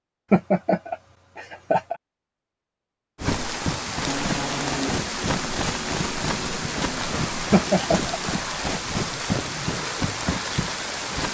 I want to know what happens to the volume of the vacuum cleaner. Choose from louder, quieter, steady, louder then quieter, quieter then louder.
quieter.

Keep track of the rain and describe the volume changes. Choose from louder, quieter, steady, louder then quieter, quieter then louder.
steady.